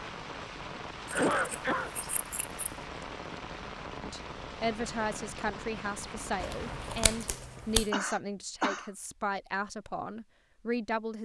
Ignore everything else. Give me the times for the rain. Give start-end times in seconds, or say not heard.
0.0-7.5.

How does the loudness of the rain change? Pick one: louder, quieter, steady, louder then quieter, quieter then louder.
steady.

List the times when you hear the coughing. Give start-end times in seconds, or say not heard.
1.1-1.9, 7.9-8.9.